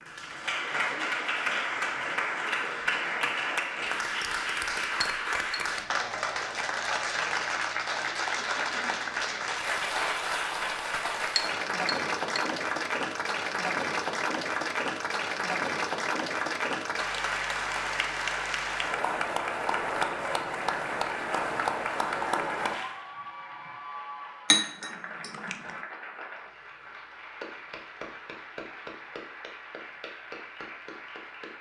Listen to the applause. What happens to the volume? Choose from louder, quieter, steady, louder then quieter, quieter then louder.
quieter.